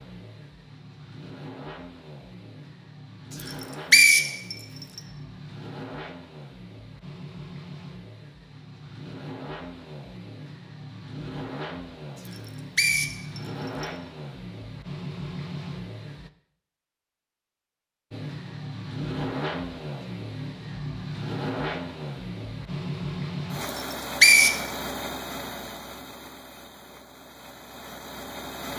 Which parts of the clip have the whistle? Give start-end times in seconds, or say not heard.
3.5-5.0, 12.2-13.8, 23.8-24.6.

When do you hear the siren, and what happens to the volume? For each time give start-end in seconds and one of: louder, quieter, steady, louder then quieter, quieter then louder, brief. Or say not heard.
not heard.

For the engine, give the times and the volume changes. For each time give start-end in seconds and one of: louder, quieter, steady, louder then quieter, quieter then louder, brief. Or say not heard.
0.0-16.3 louder
18.1-28.7 quieter.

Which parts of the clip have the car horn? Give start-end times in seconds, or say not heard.
not heard.